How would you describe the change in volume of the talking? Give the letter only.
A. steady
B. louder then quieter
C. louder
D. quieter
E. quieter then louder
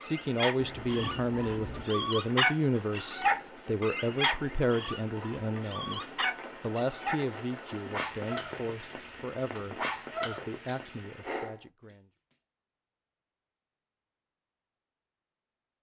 D.